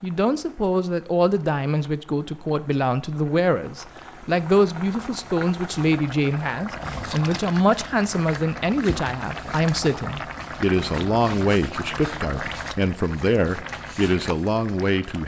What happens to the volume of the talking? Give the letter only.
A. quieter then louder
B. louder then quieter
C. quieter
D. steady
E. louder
D.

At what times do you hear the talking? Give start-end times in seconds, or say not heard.
0.0-15.2.